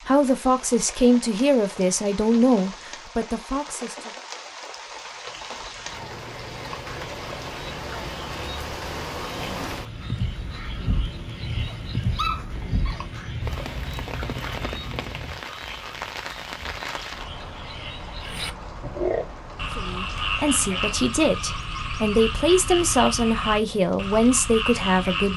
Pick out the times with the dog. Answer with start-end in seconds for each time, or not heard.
11.7-13.0.